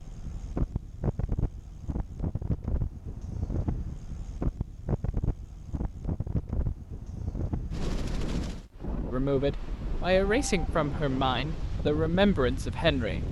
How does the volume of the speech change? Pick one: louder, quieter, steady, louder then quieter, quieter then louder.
steady.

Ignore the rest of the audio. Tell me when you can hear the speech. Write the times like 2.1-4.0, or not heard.
9.1-13.2.